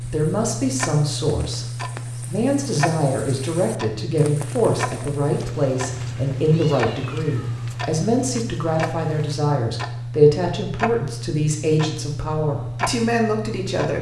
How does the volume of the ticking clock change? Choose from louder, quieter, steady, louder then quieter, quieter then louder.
steady.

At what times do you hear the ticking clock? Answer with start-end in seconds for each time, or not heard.
0.0-13.9.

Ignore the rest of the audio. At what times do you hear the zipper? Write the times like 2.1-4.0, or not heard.
not heard.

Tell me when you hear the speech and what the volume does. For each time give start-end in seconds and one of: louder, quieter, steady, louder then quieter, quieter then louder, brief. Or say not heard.
0.0-13.9 steady.